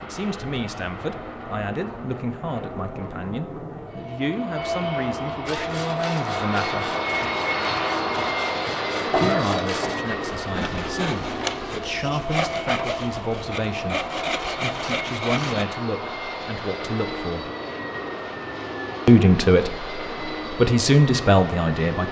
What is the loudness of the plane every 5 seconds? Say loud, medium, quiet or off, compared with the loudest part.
medium, loud, medium, medium, medium.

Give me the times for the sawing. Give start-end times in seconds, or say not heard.
5.5-15.7.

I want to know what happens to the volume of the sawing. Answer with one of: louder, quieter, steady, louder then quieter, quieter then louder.
louder.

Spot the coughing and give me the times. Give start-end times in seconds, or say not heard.
9.1-10.0.